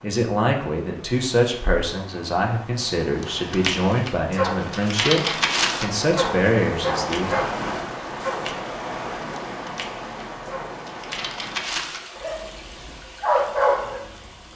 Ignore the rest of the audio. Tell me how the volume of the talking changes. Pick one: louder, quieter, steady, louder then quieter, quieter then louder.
steady.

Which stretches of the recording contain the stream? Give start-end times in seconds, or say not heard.
0.0-14.5.